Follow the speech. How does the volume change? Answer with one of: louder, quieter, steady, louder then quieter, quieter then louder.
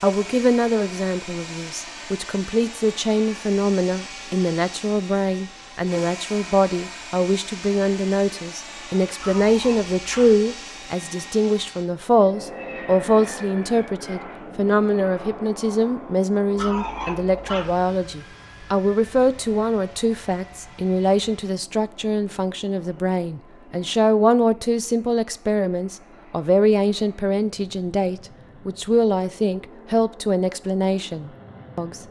steady.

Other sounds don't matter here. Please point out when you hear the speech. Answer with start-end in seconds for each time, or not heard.
0.0-32.0.